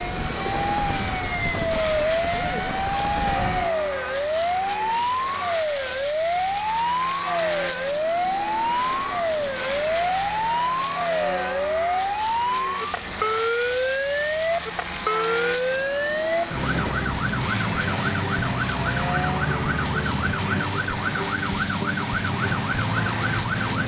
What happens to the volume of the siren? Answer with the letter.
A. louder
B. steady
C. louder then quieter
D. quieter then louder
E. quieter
B.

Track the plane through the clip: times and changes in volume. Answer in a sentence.
You can hear the plane from 0.0 to 23.8 s, at a steady volume.